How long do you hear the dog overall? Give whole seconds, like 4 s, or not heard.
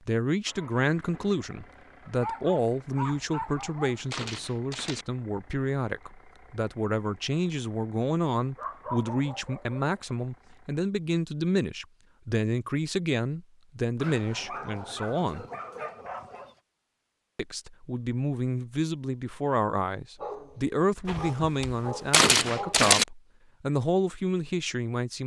9 s.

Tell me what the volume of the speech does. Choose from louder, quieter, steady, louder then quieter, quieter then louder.
steady.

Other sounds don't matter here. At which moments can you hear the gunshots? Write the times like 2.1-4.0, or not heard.
3.2-5.0, 21.1-23.1.